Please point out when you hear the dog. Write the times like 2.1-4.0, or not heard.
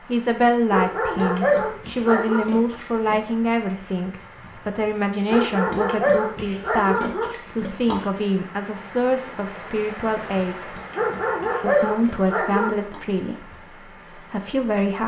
0.7-2.5, 5.2-7.2, 10.9-12.8.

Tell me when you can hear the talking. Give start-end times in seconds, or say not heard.
0.1-10.8, 11.6-13.5, 14.2-15.0.